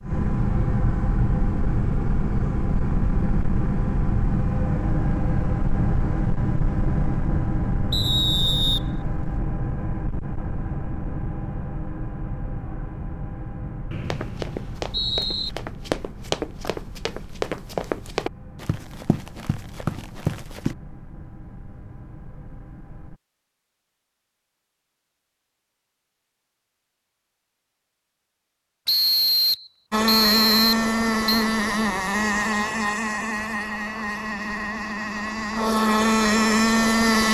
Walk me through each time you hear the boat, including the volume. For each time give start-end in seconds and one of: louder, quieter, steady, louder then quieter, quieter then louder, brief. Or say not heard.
0.0-23.2 quieter
29.9-37.2 quieter then louder.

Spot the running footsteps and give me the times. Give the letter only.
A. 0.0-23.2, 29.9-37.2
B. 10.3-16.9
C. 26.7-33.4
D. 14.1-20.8
D.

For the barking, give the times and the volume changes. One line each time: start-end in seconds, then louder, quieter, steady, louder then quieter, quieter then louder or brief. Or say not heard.
not heard.